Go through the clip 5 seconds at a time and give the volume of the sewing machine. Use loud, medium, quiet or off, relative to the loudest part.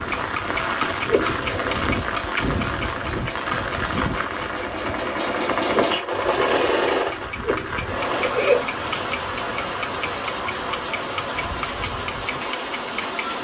medium, loud, off.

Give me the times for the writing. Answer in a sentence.
The writing can't be heard in this clip.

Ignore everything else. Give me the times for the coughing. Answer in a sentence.
The coughing can be heard from 0.8 to 1.9 s and from 7.2 to 8.7 s.